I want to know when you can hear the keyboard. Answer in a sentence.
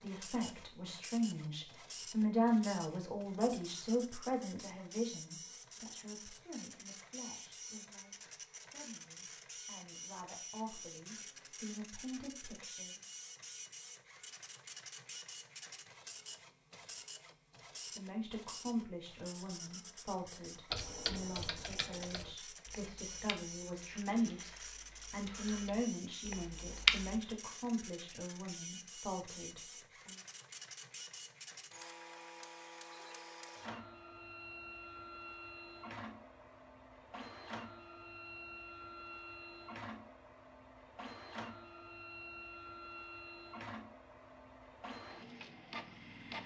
The keyboard can be heard from 20.7 to 27.2 s.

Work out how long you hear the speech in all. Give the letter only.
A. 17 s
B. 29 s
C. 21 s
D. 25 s
D.